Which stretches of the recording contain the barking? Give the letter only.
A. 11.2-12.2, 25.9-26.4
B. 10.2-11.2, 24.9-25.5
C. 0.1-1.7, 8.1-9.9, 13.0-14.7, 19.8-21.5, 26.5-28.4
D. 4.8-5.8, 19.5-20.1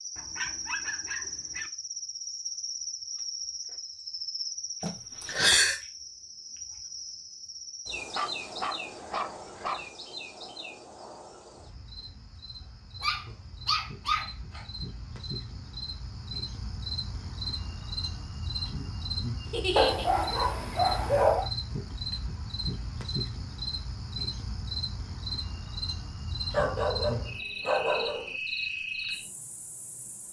C.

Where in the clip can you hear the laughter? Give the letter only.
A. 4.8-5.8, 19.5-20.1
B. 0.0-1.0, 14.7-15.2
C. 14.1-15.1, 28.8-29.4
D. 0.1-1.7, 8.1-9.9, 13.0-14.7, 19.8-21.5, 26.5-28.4
A.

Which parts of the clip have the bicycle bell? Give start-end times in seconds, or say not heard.
not heard.